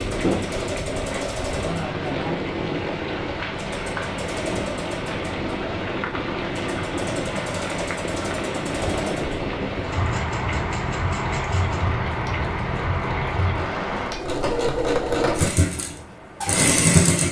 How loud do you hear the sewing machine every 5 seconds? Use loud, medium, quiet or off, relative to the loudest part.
quiet, quiet, medium, loud.